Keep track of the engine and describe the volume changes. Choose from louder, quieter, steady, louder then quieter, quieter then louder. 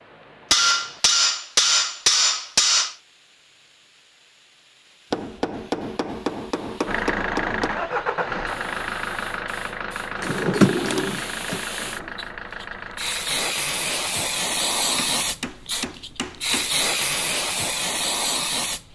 quieter.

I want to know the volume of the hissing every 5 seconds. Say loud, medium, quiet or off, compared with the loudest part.
quiet, quiet, loud, loud.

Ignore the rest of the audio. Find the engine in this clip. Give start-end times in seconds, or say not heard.
6.8-13.4.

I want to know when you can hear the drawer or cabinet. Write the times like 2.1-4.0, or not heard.
10.2-12.1.